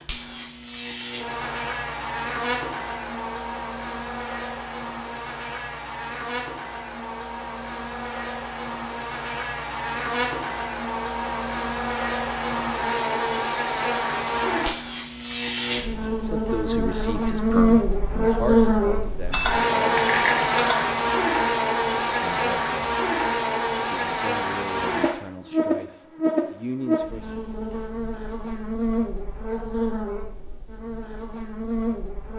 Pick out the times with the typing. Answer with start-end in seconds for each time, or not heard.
19.3-20.9.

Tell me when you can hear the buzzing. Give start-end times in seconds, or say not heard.
0.0-32.3.